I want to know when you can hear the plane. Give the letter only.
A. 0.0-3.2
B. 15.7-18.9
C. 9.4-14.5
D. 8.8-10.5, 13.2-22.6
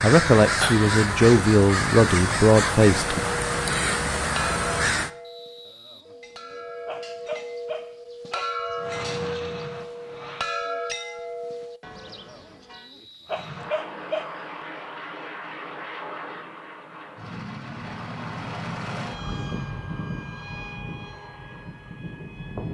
D.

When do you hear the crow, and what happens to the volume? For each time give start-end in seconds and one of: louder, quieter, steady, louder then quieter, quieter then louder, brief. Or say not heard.
0.0-5.1 steady.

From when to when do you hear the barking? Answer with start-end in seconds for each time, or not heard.
5.7-8.6, 12.1-14.4.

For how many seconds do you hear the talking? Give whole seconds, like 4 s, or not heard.
3 s.